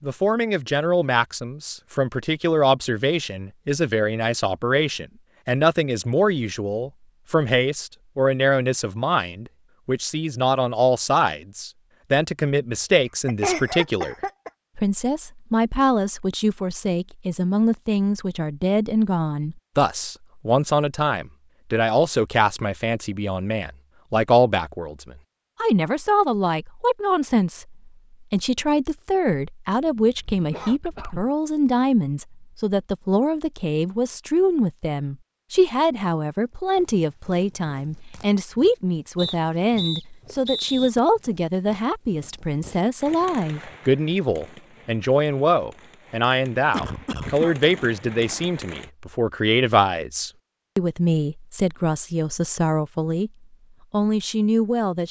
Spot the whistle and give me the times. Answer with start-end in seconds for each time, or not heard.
39.1-40.9.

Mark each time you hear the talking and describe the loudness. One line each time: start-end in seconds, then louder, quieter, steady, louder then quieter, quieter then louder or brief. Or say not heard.
0.0-14.2 steady
14.8-53.3 steady
53.9-55.0 brief.